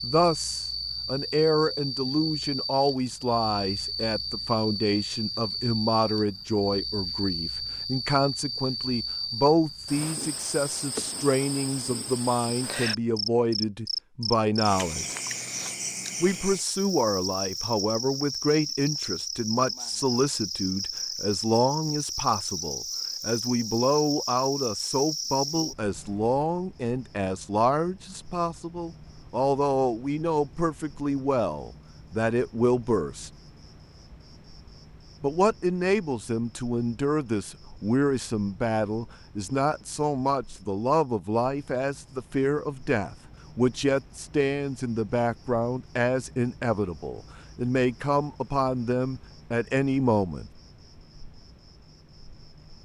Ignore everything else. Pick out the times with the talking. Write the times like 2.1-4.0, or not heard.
0.0-15.1, 16.2-33.3, 35.2-50.5.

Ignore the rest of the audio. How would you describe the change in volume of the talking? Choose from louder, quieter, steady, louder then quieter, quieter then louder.
steady.